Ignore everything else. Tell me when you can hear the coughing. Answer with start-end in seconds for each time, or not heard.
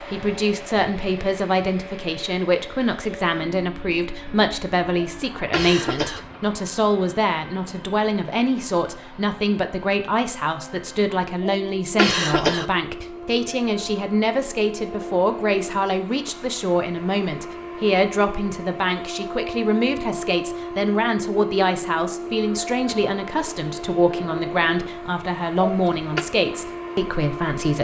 5.0-6.2, 11.4-12.7, 25.6-26.2.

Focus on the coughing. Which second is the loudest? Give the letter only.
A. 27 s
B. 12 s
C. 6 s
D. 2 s
B.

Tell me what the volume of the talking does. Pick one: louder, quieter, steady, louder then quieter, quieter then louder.
steady.